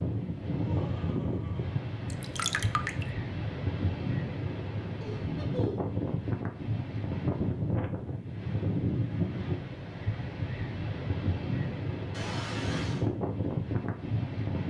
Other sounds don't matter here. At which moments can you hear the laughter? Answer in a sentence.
You can hear the laughter from 0.5 to 1.8 s, from 5.0 to 6.0 s and from 12.1 to 13.1 s.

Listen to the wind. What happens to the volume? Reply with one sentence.
The volume of the wind stays about the same.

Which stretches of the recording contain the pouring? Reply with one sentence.
The pouring can be heard from 2.1 to 3.0 s.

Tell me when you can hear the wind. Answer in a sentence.
You can hear the wind from 0.0 to 14.6 s.